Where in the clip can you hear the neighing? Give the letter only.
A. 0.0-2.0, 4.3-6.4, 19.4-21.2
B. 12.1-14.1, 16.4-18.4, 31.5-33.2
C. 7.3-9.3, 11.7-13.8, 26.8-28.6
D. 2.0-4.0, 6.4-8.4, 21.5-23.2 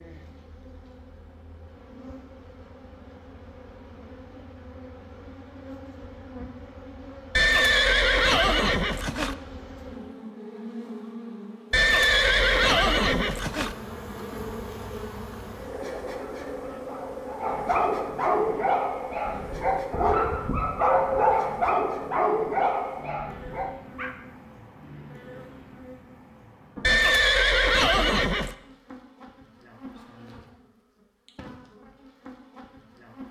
C.